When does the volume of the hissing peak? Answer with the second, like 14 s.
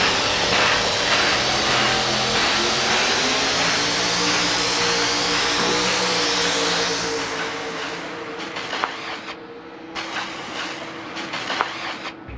1 s.